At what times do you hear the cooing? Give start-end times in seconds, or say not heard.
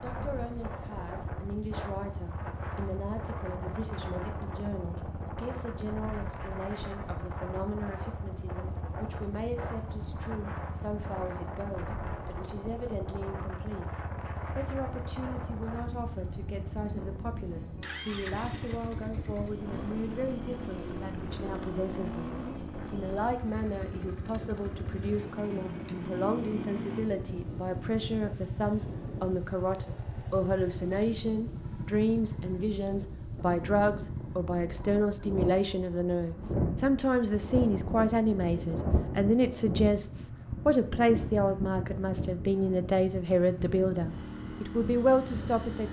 not heard.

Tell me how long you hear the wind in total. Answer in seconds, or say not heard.
46 s.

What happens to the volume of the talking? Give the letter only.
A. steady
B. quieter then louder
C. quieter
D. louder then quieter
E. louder
E.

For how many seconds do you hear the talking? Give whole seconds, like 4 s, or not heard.
46 s.